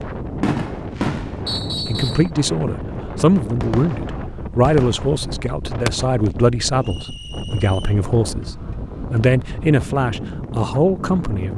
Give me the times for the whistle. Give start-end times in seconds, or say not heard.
1.4-2.3, 6.8-8.1.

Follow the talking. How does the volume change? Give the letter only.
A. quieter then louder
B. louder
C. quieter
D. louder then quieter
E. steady
E.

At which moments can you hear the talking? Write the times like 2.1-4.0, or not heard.
1.9-11.5.